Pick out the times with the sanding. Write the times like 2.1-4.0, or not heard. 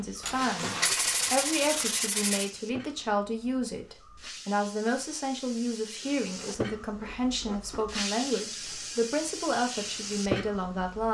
0.2-2.5, 6.0-8.1.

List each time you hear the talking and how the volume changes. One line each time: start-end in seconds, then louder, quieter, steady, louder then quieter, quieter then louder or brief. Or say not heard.
0.0-11.0 steady.